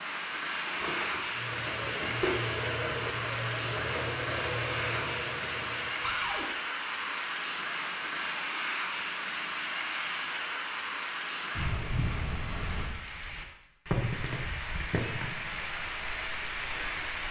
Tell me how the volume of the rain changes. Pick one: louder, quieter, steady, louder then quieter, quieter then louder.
steady.